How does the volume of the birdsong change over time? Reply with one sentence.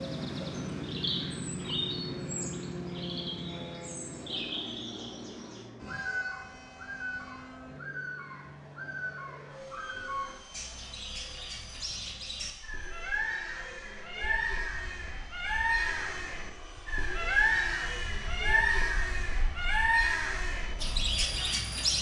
The loudness of the birdsong goes up.